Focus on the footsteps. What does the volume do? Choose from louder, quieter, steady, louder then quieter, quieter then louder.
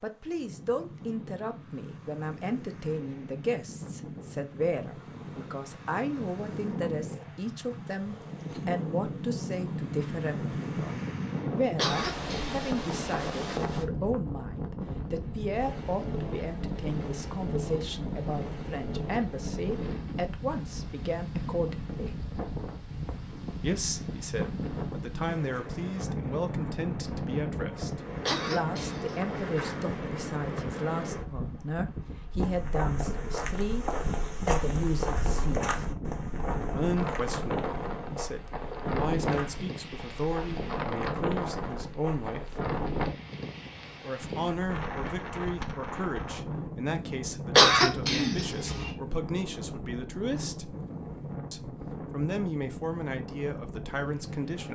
quieter.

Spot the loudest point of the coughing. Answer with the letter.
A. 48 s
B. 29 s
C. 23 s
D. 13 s
A.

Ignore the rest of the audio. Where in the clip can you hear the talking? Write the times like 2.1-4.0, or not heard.
0.0-22.2, 23.6-35.8, 36.8-42.6, 44.0-50.8, 51.5-54.6.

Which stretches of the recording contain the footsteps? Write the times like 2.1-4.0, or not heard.
32.4-42.9.